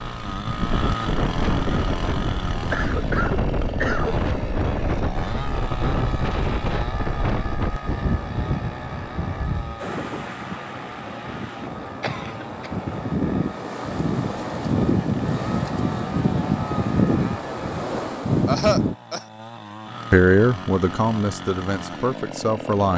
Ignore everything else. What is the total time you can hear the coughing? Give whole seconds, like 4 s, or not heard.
3 s.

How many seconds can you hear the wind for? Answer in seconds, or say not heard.
19 s.